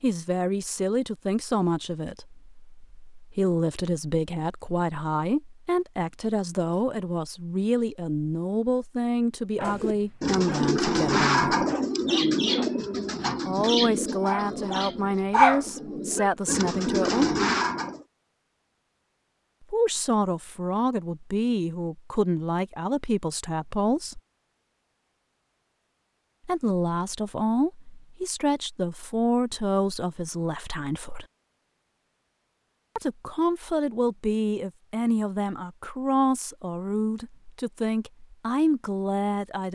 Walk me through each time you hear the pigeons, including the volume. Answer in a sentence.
The pigeons can be heard from 9.7 to 18.1 s, getting quieter then louder.